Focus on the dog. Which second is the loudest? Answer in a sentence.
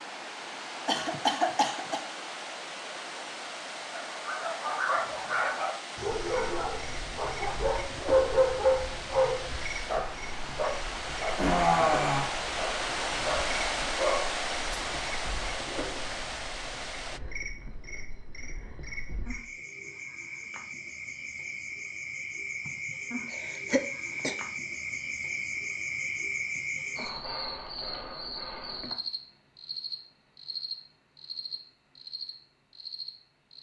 The loudest moment of the dog is at 8 seconds.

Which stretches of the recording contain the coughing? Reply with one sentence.
The coughing can be heard from 0.8 to 2.0 s, from 11.3 to 12.3 s and from 22.6 to 24.4 s.